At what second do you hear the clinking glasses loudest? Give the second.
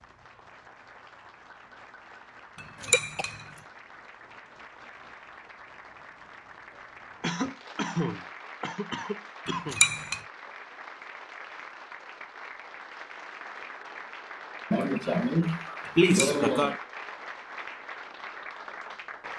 10 s.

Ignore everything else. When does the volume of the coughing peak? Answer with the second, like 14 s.
16 s.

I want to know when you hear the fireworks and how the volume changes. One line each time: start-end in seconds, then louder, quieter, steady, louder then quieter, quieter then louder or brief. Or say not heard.
not heard.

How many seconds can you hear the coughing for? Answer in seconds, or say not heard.
5 s.